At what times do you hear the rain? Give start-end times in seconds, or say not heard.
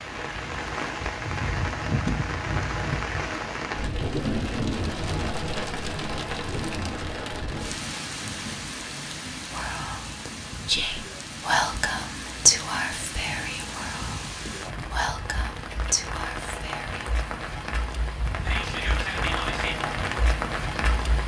0.0-21.2.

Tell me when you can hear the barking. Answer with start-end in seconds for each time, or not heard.
not heard.